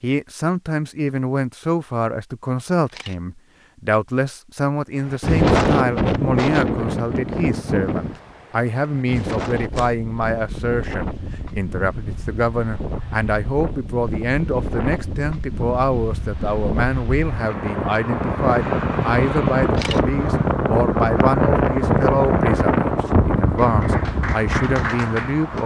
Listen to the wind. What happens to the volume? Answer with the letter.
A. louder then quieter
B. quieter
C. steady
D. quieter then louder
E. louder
D.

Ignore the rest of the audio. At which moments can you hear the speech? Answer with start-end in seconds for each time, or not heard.
0.0-25.6.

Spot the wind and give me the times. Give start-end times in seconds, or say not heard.
5.1-25.6.